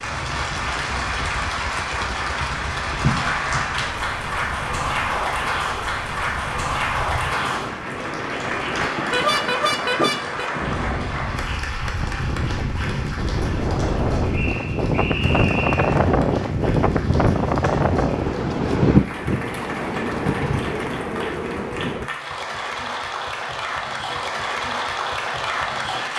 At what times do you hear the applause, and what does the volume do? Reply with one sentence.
The applause can be heard from 0.0 to 26.1 s, getting quieter then louder.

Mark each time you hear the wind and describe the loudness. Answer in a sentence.
The wind can be heard from 0.0 to 22.1 s, getting louder.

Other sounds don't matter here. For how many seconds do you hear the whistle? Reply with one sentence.
You can hear the whistle for 2 seconds altogether.